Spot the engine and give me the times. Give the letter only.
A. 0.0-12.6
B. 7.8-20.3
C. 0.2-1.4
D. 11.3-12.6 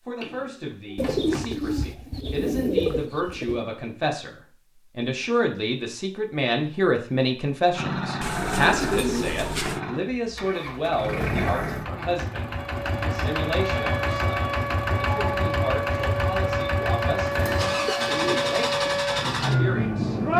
B.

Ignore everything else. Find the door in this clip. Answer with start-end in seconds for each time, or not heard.
0.2-1.4.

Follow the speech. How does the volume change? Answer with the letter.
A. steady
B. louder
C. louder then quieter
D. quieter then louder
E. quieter
C.